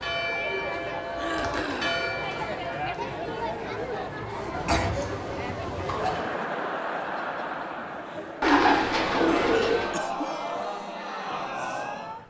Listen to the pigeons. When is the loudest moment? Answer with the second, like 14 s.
9 s.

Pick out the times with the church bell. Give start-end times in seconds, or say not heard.
0.0-2.6.